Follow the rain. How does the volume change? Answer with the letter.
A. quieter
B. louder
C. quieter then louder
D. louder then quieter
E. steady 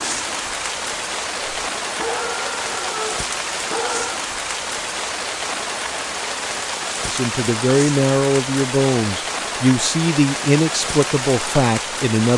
E.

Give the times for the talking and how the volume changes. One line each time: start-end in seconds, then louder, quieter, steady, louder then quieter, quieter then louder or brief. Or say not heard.
7.0-12.3 steady.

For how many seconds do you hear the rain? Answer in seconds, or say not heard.
12 s.